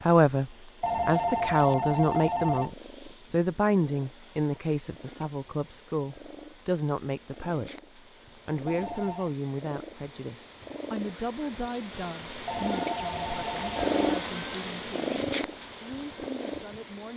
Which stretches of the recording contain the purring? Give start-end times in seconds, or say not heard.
0.0-17.1.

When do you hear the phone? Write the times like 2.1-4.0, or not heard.
0.8-2.8, 8.7-9.3, 12.4-14.1.